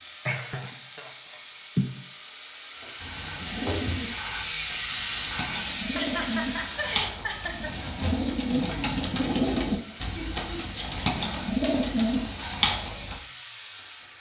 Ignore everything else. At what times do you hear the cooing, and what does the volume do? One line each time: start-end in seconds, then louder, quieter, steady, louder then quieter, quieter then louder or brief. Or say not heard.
3.0-13.2 louder.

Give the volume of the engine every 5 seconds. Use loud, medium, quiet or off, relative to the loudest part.
loud, loud, medium.